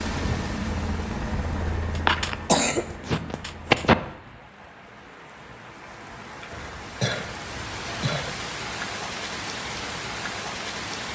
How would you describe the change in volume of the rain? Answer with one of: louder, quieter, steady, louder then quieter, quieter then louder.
quieter then louder.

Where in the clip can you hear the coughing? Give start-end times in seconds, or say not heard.
1.9-4.0, 6.5-8.3.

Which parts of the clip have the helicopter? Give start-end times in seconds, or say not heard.
0.0-4.2.